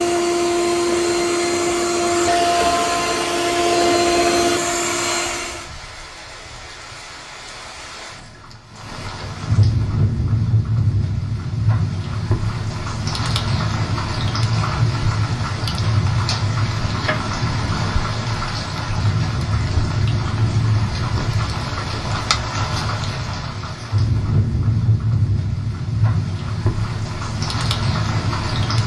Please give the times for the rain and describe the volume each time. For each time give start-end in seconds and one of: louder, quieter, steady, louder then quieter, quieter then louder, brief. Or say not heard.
0.1-28.8 louder.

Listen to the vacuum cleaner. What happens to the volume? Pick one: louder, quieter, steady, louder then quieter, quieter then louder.
steady.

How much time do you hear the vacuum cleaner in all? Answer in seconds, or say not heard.
6 s.